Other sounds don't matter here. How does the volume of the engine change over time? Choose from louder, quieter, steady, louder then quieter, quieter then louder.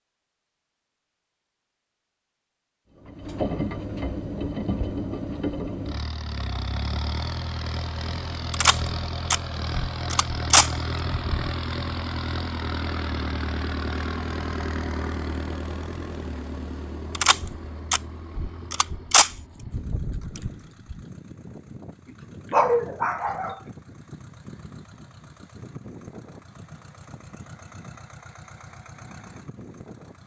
quieter.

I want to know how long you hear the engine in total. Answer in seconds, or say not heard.
27 s.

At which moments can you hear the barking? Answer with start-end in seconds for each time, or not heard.
22.5-23.6.